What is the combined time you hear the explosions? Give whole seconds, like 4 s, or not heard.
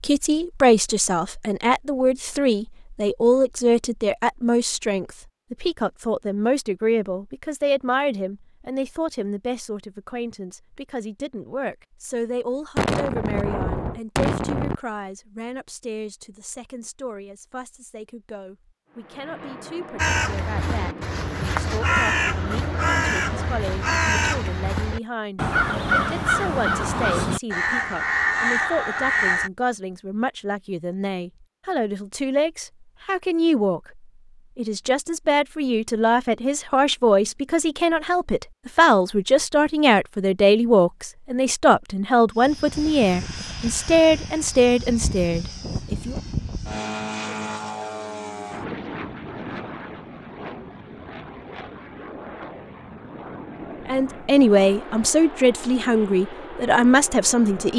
2 s.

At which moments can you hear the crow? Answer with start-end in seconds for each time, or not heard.
19.9-29.5.